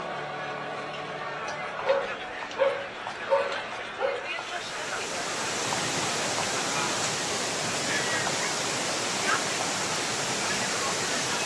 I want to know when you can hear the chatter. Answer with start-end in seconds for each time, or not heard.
0.0-11.4.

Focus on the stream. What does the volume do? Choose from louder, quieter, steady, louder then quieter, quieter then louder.
steady.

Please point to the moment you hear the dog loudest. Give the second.
3 s.